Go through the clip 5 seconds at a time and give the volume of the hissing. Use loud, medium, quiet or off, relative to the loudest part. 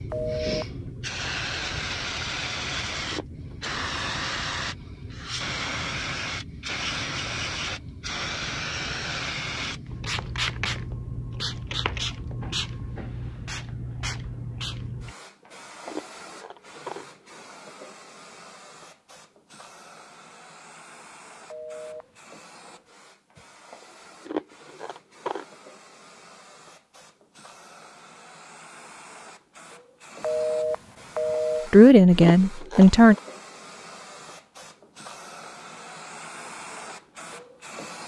loud, loud, loud, quiet, quiet, quiet, quiet, medium.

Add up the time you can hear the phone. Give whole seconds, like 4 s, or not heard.
3 s.